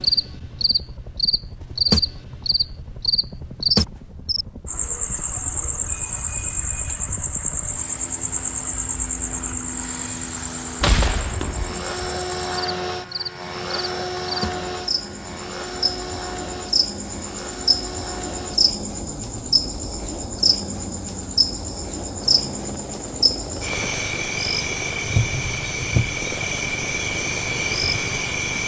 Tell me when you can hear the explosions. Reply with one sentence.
The explosions can be heard from 10.8 to 11.9 s.